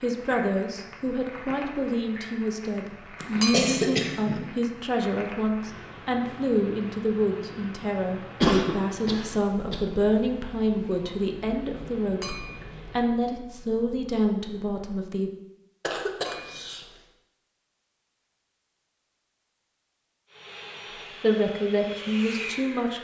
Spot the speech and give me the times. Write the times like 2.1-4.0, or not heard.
0.0-15.3, 21.2-23.0.